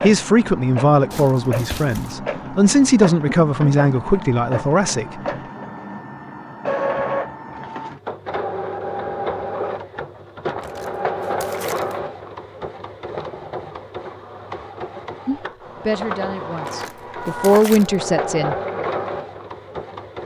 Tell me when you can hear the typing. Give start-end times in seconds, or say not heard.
not heard.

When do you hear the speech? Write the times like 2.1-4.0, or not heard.
0.0-5.1, 15.2-18.6.